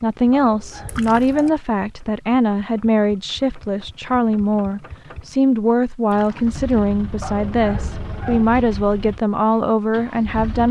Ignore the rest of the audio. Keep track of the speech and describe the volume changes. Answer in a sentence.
The loudness of the speech stays about the same.